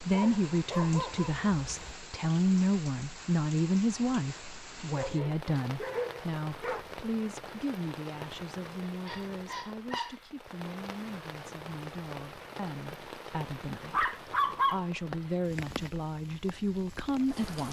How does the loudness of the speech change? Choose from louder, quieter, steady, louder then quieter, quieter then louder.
quieter then louder.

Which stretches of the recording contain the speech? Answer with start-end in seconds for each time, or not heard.
0.0-17.6.